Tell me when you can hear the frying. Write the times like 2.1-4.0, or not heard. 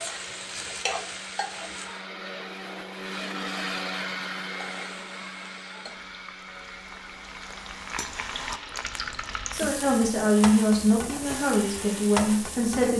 0.0-2.0, 4.5-12.9.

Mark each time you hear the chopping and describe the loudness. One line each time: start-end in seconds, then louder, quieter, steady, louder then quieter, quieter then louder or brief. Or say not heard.
not heard.